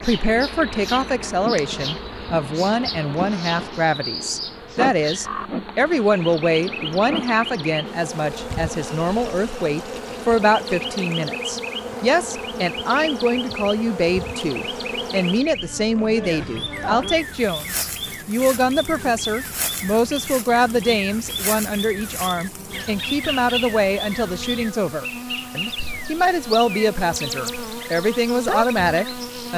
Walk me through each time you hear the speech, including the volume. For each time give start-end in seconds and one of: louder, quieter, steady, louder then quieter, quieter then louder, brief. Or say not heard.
0.0-29.5 steady.